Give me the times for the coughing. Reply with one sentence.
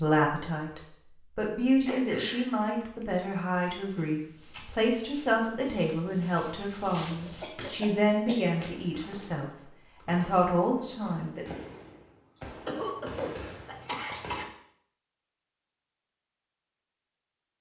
You can hear the coughing from 1.9 to 3.0 s, from 7.2 to 8.4 s and from 12.7 to 14.4 s.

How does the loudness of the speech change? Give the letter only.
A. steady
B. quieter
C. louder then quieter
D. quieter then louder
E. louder
A.